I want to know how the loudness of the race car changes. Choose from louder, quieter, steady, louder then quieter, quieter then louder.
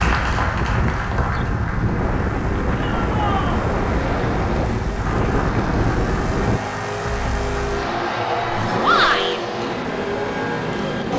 louder.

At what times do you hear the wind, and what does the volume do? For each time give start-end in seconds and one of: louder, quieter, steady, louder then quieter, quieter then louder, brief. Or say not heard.
0.0-6.6 steady.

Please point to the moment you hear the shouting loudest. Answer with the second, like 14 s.
9 s.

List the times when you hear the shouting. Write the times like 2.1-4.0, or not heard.
2.8-3.6, 8.8-9.4.